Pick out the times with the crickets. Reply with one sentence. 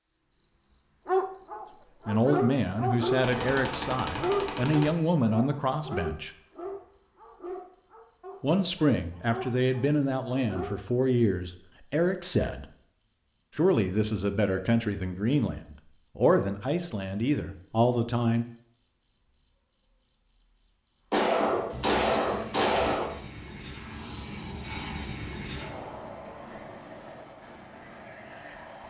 The crickets can be heard from 0.0 to 28.8 s.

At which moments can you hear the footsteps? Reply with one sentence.
The footsteps can't be heard in this clip.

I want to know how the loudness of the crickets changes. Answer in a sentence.
The loudness of the crickets stays about the same.